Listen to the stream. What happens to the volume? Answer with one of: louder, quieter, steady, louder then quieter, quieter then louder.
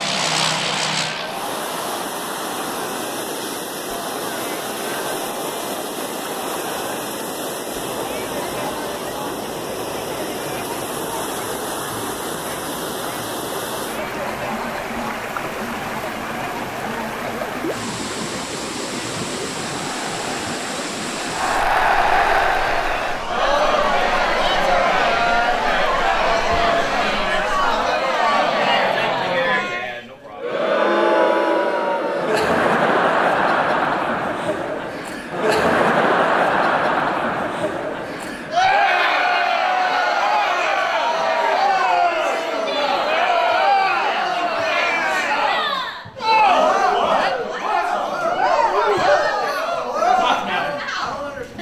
quieter.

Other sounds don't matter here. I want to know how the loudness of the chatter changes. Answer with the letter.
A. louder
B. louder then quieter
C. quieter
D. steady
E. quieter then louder
A.